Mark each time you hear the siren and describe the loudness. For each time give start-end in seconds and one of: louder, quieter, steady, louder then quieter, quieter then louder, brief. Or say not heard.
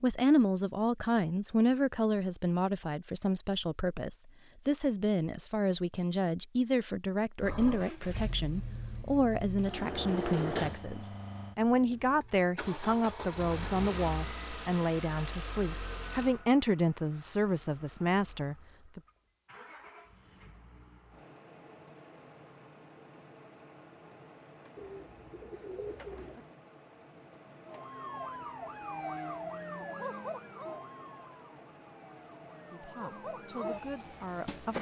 27.6-34.7 quieter then louder.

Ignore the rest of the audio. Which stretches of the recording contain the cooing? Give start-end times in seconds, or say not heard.
24.8-26.4.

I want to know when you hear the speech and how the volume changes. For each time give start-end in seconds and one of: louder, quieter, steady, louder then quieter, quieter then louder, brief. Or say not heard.
0.0-19.0 steady
32.7-34.7 brief.